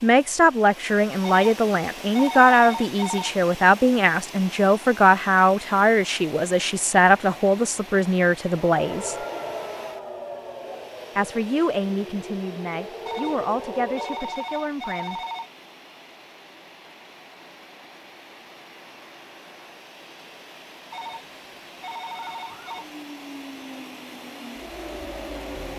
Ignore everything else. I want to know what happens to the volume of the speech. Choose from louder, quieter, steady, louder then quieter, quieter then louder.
quieter.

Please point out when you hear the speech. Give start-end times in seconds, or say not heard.
0.0-9.2, 11.2-15.2.